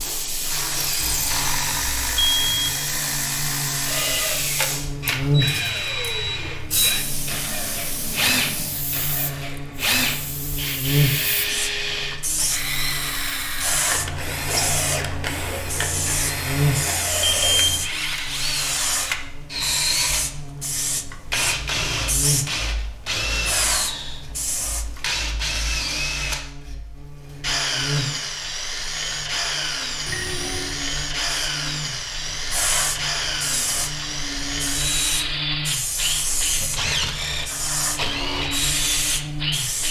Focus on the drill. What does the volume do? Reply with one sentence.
The loudness of the drill stays about the same.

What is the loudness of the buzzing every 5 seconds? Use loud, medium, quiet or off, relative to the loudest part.
medium, loud, loud, loud, medium, medium, medium, medium.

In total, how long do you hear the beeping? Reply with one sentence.
You can hear the beeping for 3 seconds altogether.